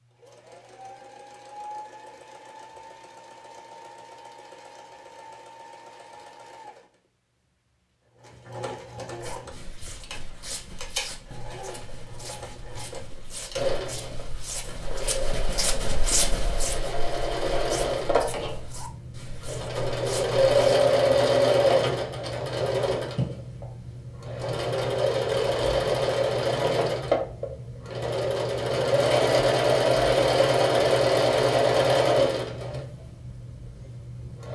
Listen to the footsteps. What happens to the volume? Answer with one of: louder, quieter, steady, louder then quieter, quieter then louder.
louder then quieter.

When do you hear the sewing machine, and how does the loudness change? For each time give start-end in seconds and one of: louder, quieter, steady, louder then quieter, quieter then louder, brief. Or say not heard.
0.0-34.5 louder.